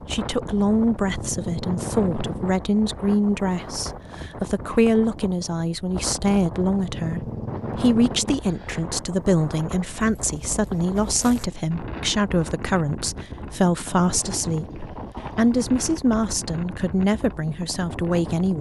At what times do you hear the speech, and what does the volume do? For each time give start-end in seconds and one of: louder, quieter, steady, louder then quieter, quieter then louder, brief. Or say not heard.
0.1-18.5 steady.